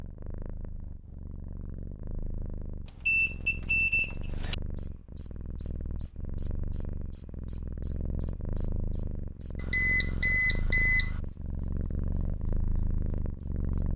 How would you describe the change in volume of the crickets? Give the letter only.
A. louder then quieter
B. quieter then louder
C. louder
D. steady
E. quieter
E.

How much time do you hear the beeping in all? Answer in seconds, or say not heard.
3 s.